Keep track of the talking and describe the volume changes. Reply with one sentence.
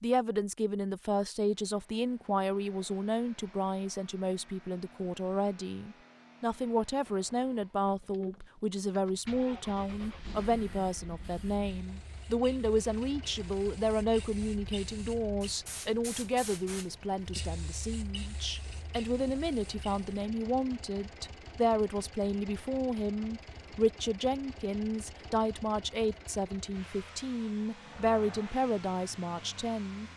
The volume of the talking stays about the same.